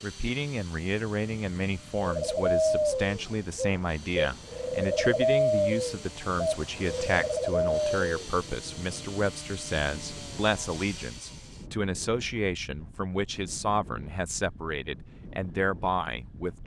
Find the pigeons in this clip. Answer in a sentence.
The pigeons can be heard from 2.0 to 8.2 s.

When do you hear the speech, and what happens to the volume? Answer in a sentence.
You can hear the speech from 0.0 to 16.6 s, at a steady volume.